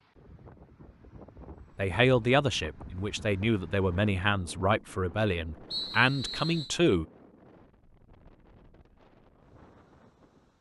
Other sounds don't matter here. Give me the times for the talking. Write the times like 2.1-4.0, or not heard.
1.8-7.0.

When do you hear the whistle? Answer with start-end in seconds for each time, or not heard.
5.7-6.7.